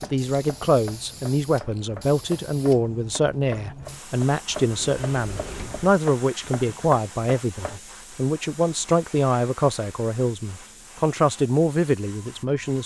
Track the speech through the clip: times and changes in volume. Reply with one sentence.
You can hear the speech from 0.0 to 12.8 s, at a steady volume.